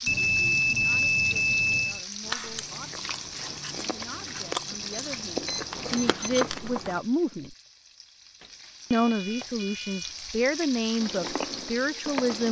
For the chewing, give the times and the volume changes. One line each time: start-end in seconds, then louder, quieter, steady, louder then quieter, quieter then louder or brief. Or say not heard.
2.2-7.0 louder
11.0-12.4 brief.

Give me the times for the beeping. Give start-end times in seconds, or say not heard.
0.1-2.0, 4.9-6.5, 8.4-10.2.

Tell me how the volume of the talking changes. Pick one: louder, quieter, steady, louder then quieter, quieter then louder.
louder.